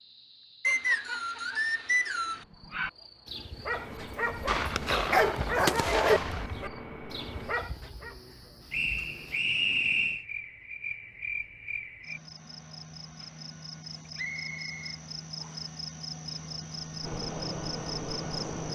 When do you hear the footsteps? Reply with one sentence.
You can't hear the footsteps here.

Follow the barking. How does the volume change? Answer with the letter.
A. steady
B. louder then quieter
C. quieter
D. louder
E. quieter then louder
B.